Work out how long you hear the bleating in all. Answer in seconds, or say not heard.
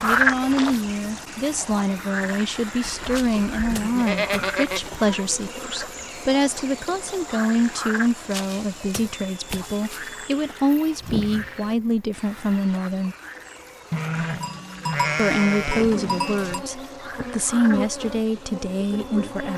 5 s.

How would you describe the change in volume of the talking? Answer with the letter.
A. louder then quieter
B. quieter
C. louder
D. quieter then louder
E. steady
E.